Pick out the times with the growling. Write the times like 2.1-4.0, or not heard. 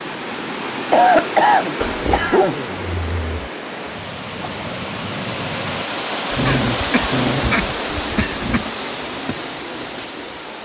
1.8-3.5, 6.3-8.7.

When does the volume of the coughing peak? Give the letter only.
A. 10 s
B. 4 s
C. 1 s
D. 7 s
C.